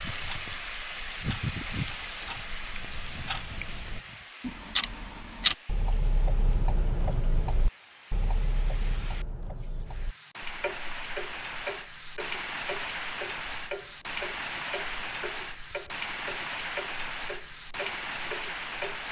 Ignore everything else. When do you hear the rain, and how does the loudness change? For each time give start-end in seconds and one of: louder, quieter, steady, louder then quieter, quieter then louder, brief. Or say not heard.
0.0-19.0 quieter then louder.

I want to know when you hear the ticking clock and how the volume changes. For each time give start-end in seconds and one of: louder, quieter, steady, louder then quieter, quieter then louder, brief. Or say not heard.
0.0-19.0 louder then quieter.